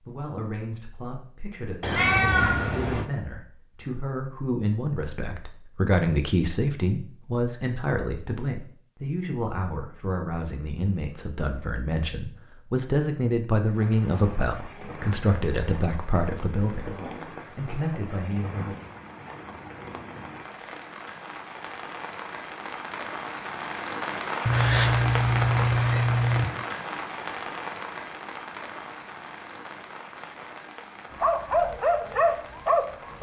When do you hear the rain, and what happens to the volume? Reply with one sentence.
The rain can be heard from 13.7 to 33.1 s, getting louder then quieter.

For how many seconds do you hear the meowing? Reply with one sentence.
The meowing can be heard for 3 seconds in total.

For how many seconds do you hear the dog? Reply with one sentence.
The dog can be heard for 2 seconds in total.